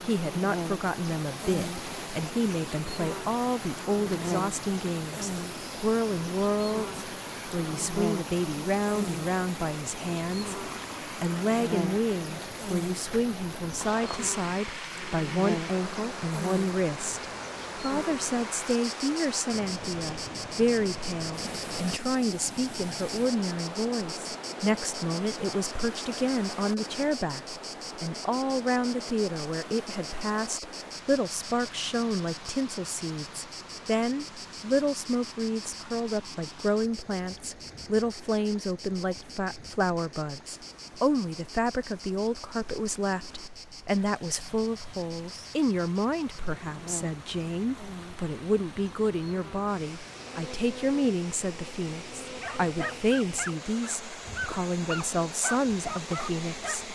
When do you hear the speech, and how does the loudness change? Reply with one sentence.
You can hear the speech from 0.0 to 56.9 s, at a steady volume.